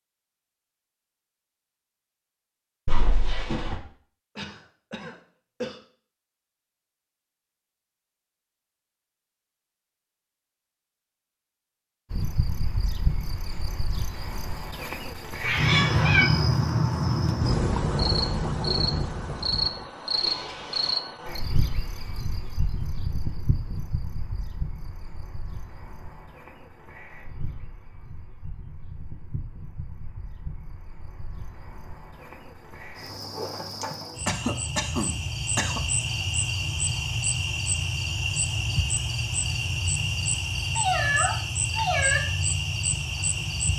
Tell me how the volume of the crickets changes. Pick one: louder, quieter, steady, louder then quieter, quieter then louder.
quieter then louder.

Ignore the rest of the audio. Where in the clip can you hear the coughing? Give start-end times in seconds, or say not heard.
4.3-5.8, 20.1-21.0, 33.8-35.9.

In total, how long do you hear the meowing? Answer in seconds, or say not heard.
3 s.